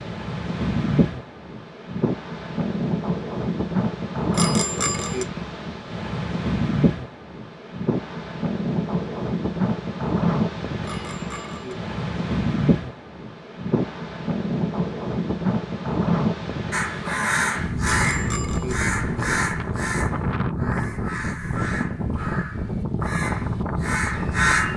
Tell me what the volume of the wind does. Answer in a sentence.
The volume of the wind stays about the same.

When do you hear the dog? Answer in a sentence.
The dog can't be heard in this clip.